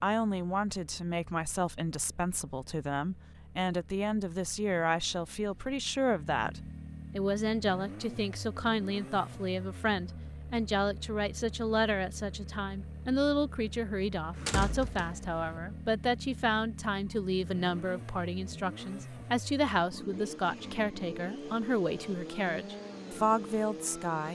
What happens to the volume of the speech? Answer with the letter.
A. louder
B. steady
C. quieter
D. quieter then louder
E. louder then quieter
B.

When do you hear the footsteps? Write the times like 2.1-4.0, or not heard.
not heard.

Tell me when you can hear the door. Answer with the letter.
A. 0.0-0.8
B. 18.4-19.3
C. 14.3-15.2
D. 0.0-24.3
C.